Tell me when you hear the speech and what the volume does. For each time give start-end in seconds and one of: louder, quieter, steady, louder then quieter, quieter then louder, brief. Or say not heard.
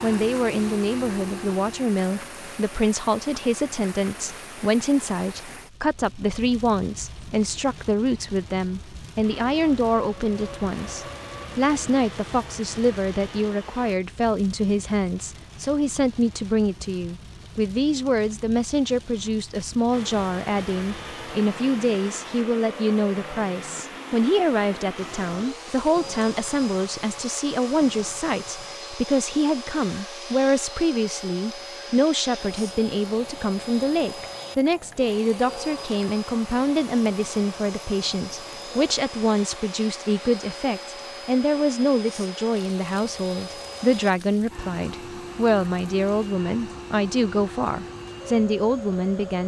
0.0-49.4 steady.